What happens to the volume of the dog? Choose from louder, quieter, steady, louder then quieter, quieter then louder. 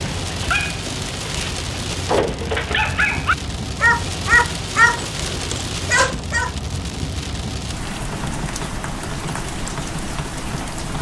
louder then quieter.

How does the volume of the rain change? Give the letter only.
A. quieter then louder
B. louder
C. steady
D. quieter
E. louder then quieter
C.